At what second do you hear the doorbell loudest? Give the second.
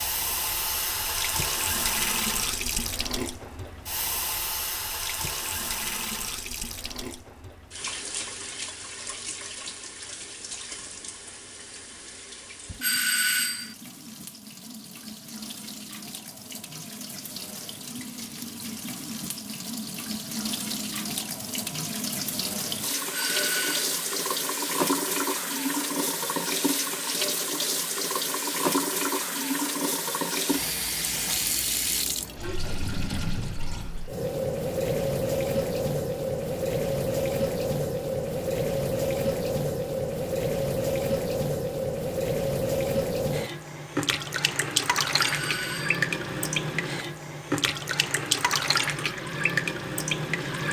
13 s.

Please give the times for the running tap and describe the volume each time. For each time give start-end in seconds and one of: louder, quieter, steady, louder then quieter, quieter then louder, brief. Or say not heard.
0.0-50.6 quieter then louder.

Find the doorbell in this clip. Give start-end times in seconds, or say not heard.
12.8-13.8, 23.1-23.9, 45.1-46.0.